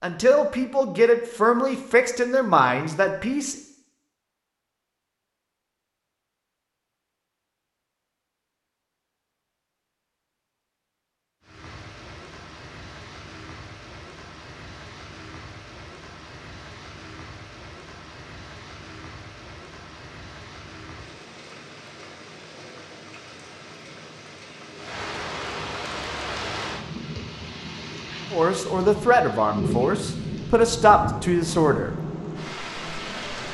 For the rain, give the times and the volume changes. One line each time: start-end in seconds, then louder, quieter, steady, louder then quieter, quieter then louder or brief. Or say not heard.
11.4-33.4 louder.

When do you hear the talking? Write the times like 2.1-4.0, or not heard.
0.0-3.5, 28.3-31.9.